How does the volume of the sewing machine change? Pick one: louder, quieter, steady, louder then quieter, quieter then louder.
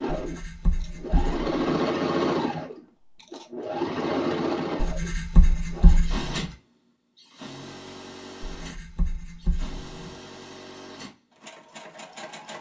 quieter.